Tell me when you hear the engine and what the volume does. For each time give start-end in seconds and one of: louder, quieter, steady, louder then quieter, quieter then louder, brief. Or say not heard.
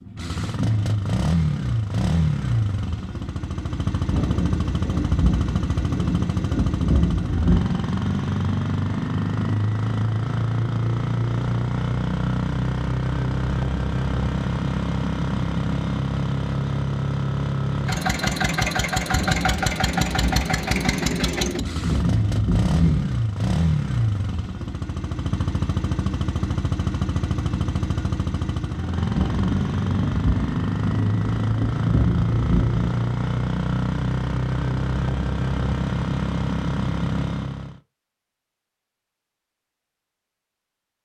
0.0-37.8 steady.